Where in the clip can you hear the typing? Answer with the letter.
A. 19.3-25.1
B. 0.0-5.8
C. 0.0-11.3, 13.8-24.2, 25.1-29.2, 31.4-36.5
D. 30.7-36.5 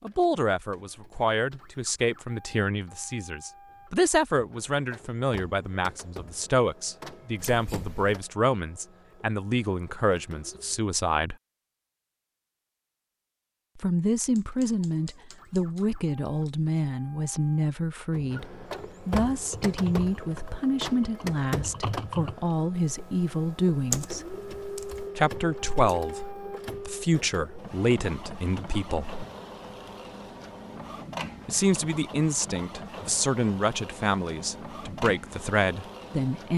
A.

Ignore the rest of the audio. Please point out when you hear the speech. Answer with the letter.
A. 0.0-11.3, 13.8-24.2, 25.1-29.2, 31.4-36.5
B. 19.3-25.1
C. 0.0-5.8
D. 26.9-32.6
A.